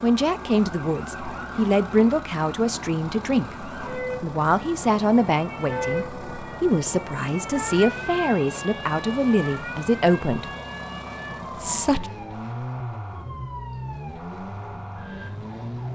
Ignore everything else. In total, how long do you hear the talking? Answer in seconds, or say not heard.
11 s.